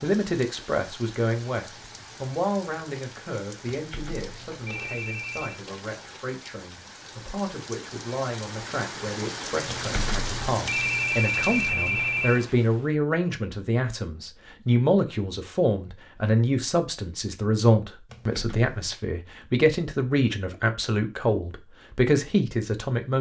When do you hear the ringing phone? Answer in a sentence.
You can hear the ringing phone from 3.7 to 5.6 s, from 9.7 to 12.4 s and from 18.1 to 18.9 s.